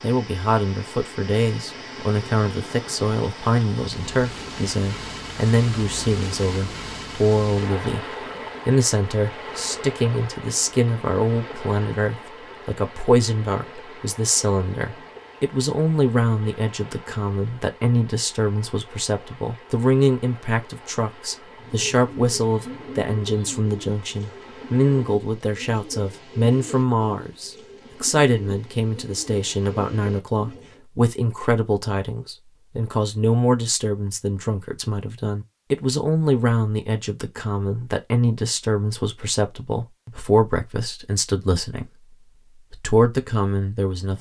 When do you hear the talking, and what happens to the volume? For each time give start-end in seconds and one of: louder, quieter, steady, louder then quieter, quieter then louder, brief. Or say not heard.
0.0-8.1 steady
8.7-44.1 steady.